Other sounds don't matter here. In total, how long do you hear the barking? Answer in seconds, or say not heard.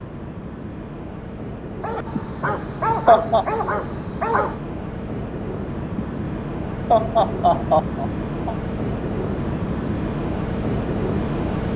3 s.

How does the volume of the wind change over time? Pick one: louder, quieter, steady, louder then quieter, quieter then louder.
louder.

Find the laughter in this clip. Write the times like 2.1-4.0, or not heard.
2.1-3.5, 6.0-8.6.